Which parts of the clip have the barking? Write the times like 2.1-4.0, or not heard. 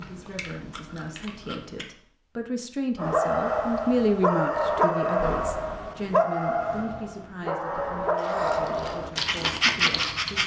3.0-10.4.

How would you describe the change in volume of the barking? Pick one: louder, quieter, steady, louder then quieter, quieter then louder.
steady.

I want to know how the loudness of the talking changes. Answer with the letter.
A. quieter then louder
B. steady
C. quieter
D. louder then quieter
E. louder
D.